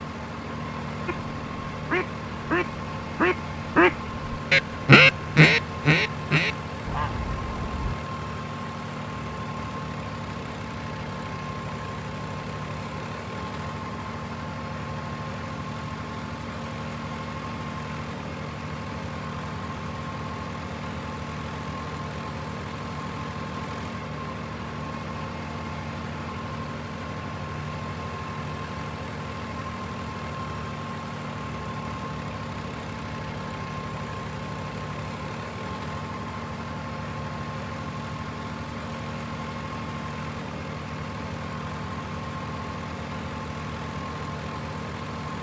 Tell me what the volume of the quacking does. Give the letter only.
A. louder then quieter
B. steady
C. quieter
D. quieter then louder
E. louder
A.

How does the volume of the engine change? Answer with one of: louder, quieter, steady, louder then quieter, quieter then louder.
steady.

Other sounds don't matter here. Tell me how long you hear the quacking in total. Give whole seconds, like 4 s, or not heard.
7 s.